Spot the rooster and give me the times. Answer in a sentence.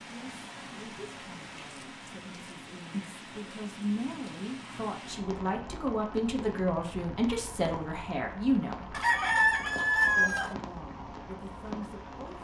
The rooster can be heard from 8.9 to 10.6 s.